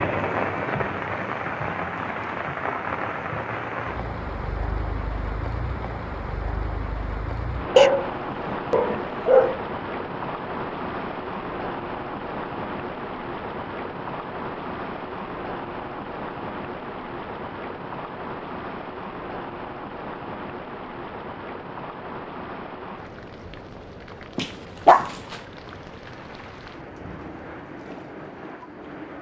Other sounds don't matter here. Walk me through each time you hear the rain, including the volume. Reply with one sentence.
The rain can be heard from 0.0 to 29.1 s, getting quieter.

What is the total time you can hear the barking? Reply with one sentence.
The barking can be heard for 3 seconds in total.